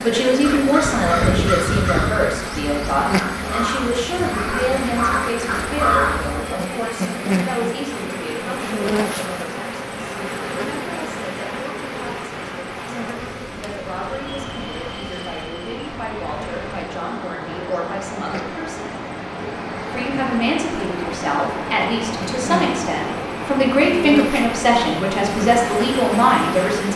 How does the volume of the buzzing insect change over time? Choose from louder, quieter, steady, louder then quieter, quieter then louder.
quieter then louder.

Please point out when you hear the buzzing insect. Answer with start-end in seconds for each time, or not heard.
0.0-26.9.